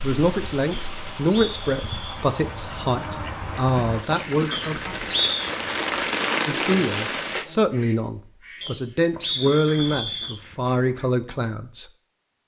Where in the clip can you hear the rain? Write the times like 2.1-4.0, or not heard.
0.0-7.5.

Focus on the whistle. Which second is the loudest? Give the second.
5 s.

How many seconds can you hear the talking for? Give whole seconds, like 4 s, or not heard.
10 s.